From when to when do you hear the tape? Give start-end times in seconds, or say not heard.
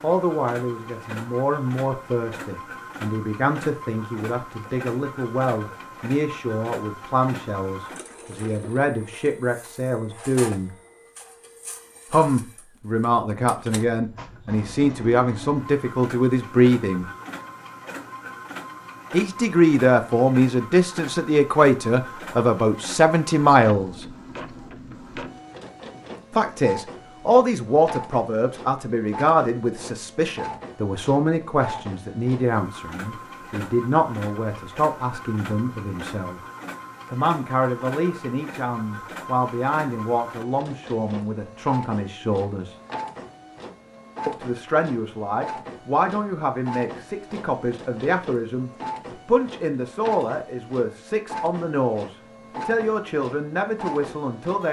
not heard.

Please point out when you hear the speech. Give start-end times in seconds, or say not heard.
0.0-10.7, 12.1-17.1, 19.1-24.1, 26.3-36.4, 37.1-42.8, 44.2-54.6.